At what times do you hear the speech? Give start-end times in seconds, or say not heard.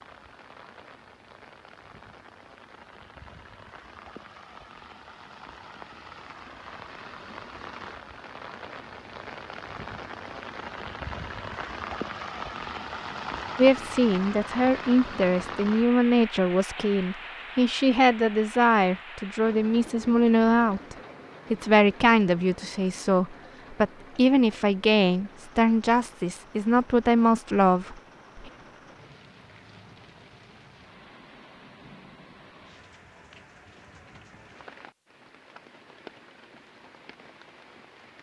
13.6-28.5.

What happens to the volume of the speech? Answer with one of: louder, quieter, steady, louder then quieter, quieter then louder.
steady.